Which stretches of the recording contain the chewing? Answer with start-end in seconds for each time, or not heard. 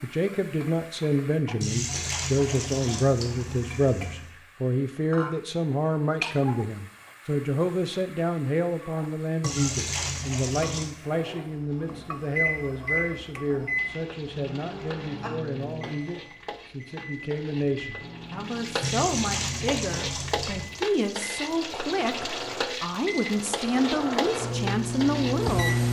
not heard.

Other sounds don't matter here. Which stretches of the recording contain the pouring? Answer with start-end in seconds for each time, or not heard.
1.6-4.3, 9.4-10.9, 18.8-20.7.